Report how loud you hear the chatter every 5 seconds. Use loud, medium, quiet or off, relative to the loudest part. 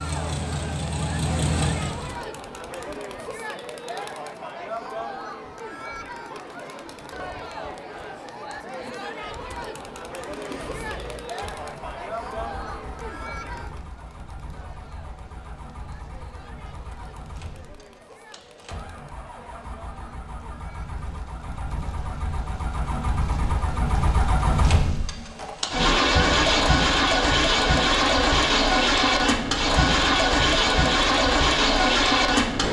loud, loud, loud, quiet, quiet, off, off.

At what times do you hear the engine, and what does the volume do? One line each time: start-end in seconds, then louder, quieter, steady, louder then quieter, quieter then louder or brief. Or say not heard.
0.0-2.2 brief
10.2-32.6 louder.